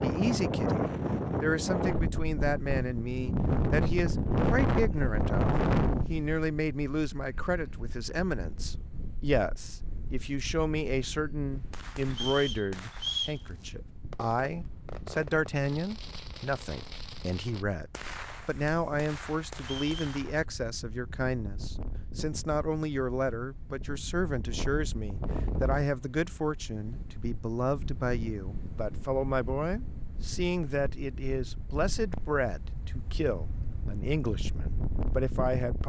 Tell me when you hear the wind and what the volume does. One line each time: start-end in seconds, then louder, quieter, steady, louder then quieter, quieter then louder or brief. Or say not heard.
0.0-35.8 quieter then louder.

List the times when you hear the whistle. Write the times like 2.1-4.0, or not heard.
12.1-13.4, 19.6-20.2.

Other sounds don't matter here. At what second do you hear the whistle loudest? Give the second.
13 s.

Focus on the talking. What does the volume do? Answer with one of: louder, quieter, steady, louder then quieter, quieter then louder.
steady.